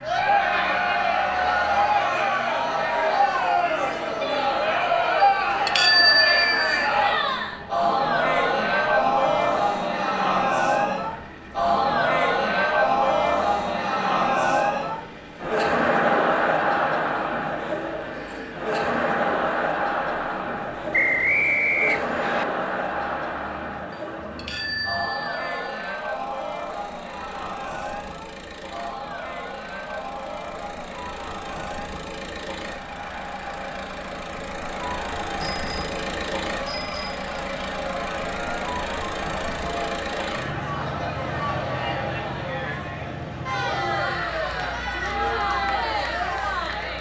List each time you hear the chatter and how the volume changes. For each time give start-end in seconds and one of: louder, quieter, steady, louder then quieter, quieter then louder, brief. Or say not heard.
0.0-46.9 quieter then louder.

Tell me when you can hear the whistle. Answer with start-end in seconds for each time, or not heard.
20.9-22.4.